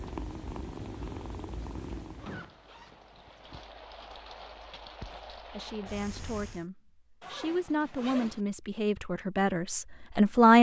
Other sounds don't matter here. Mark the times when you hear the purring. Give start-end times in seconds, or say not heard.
0.0-2.5.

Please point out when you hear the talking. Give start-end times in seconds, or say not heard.
5.1-10.5.